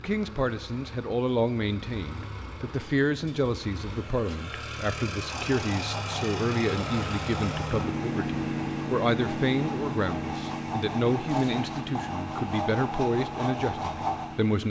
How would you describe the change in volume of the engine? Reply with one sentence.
The volume of the engine goes up, then down.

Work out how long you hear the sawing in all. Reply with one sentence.
The sawing can be heard for 9 seconds in total.